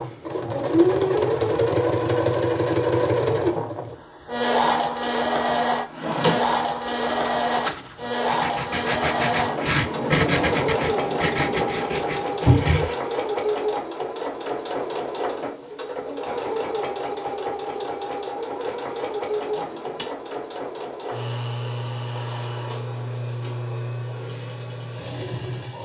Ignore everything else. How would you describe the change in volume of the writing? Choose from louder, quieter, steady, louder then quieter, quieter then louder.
louder then quieter.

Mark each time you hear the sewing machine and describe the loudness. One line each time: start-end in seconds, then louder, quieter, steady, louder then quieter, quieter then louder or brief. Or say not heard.
0.0-25.7 quieter.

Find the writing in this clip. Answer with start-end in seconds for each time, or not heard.
6.5-13.0.